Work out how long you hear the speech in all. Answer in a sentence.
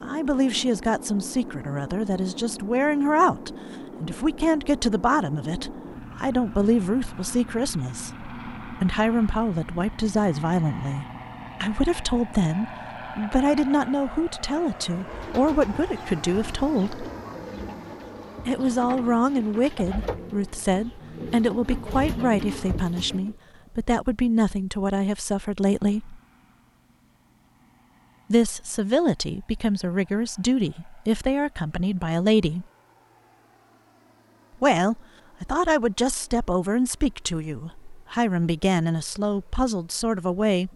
You can hear the speech for 35 seconds altogether.